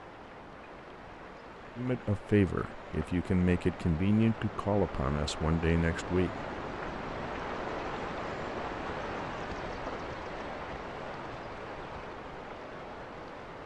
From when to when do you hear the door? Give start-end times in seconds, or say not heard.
not heard.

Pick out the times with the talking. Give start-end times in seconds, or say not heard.
1.8-6.5.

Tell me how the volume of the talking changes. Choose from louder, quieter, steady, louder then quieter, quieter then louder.
steady.